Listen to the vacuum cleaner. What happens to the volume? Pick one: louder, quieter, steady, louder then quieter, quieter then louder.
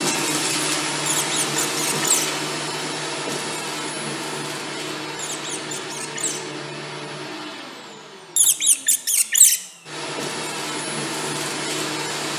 quieter then louder.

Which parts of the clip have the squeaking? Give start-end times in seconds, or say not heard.
1.1-2.2, 5.2-6.4, 8.3-9.6.